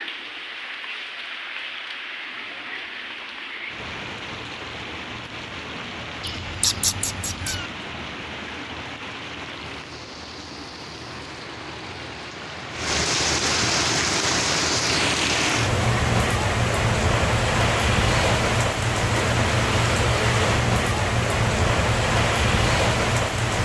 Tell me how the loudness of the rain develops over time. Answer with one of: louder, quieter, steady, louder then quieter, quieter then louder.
louder.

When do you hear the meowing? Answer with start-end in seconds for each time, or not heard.
6.2-7.7.